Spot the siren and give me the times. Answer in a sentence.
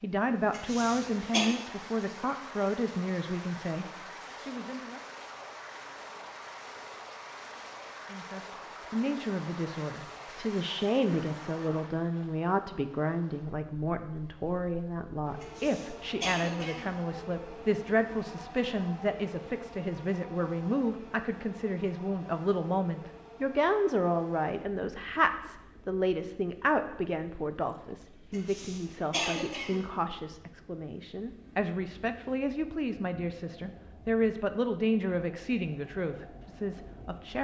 You can't hear the siren here.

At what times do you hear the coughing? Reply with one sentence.
The coughing can be heard from 0.5 to 1.5 s, from 15.4 to 16.9 s and from 28.3 to 29.9 s.